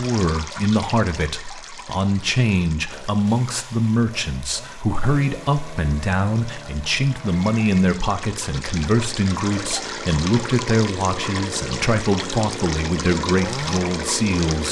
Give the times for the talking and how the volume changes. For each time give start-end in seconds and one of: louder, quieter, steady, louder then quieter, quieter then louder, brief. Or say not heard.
0.0-14.6 steady.